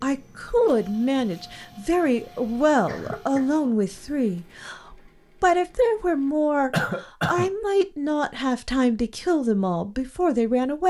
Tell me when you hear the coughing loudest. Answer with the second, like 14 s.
7 s.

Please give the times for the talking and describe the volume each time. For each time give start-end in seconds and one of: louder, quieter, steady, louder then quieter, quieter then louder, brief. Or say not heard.
0.0-10.8 steady.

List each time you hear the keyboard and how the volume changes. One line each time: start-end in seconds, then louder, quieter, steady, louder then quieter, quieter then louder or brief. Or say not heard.
not heard.